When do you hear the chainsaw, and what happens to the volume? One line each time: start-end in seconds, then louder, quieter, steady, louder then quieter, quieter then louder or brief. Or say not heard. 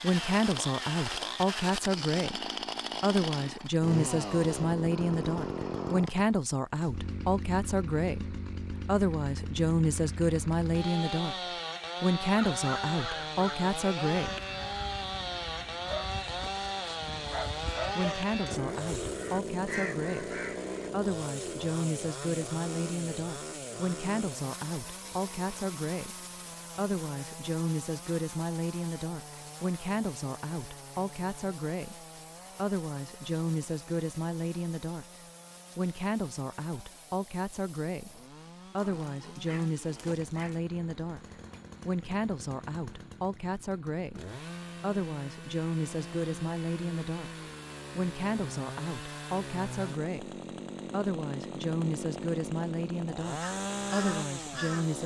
0.0-55.0 quieter then louder.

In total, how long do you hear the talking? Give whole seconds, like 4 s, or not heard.
49 s.